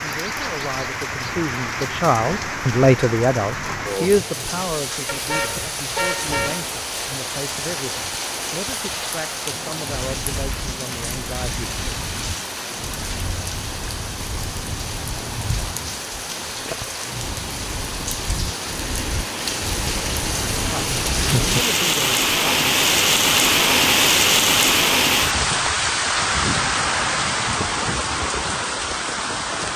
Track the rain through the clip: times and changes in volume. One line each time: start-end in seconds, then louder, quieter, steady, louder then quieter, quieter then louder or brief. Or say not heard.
0.0-29.7 louder.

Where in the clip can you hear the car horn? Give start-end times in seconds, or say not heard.
5.1-6.7.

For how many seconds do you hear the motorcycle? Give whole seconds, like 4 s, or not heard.
not heard.